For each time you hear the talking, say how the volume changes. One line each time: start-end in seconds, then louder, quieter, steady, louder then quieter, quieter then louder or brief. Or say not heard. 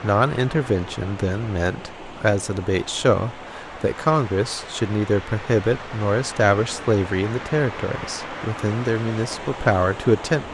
0.0-10.4 steady.